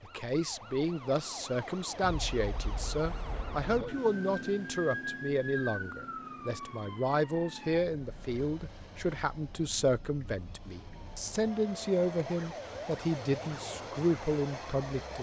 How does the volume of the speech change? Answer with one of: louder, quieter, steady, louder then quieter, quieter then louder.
steady.